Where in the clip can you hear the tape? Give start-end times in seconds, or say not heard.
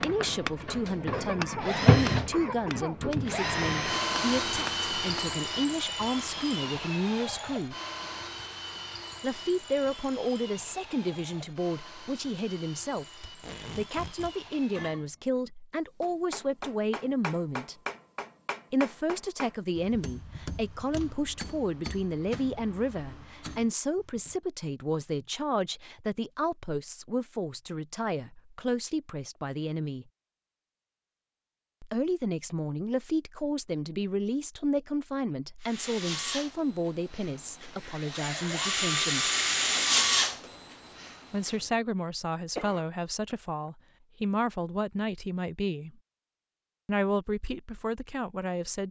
13.2-14.3.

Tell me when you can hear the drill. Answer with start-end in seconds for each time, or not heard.
0.0-15.1, 35.6-41.7.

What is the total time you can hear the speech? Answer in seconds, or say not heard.
42 s.